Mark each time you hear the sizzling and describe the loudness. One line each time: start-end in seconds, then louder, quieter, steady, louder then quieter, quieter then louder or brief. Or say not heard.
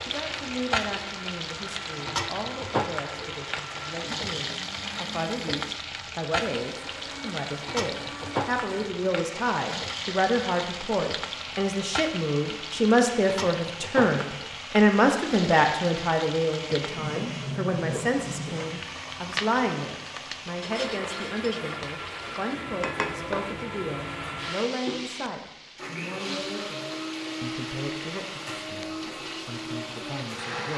0.0-30.7 quieter.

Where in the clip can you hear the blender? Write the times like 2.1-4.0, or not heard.
0.1-30.7.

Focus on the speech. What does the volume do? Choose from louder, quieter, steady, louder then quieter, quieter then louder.
louder then quieter.